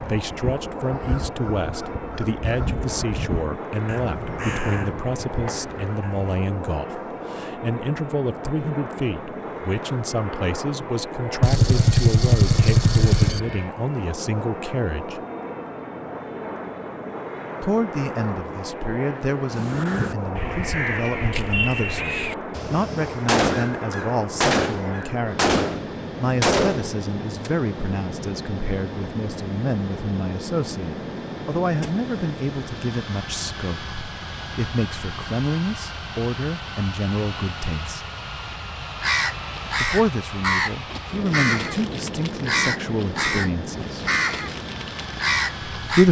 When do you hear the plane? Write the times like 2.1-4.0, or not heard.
0.0-46.0.